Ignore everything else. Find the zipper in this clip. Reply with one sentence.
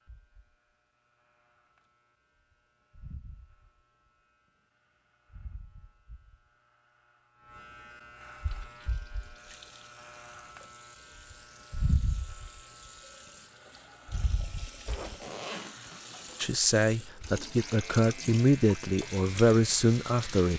You can hear the zipper from 14.8 to 16.6 s.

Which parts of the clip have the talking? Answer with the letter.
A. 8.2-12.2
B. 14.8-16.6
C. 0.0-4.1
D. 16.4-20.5
D.